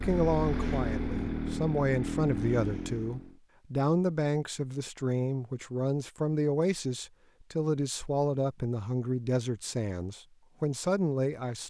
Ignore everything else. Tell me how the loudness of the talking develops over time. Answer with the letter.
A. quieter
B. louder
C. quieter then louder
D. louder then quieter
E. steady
E.